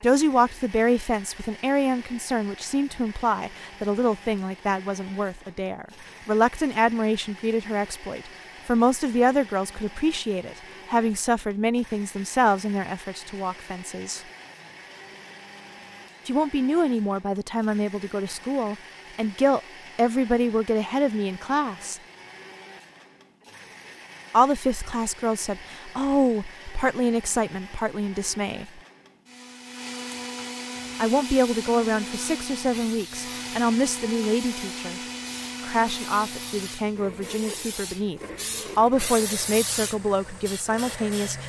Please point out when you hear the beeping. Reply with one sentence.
The beeping can't be heard in this clip.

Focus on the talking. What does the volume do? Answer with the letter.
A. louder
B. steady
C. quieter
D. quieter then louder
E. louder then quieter
B.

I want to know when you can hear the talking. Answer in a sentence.
You can hear the talking from 0.0 to 14.2 s, from 16.2 to 22.0 s, from 24.3 to 28.8 s, from 30.9 to 35.0 s and from 35.6 to 41.4 s.